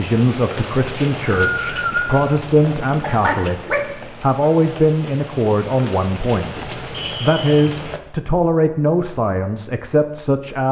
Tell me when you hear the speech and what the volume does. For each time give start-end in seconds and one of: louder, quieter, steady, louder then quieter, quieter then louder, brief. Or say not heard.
0.0-10.6 steady.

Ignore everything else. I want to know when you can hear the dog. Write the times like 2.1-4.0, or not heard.
3.0-4.0.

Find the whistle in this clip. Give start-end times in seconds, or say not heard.
0.8-2.2, 6.9-7.7.